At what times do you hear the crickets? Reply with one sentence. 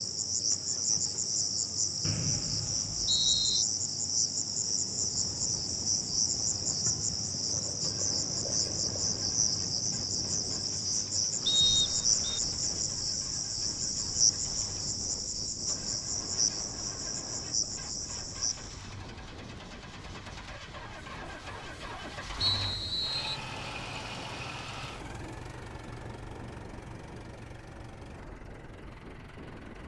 You can hear the crickets from 0.0 to 18.9 s.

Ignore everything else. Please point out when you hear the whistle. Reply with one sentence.
The whistle can be heard from 2.0 to 3.6 s, from 11.4 to 12.4 s and from 22.4 to 23.4 s.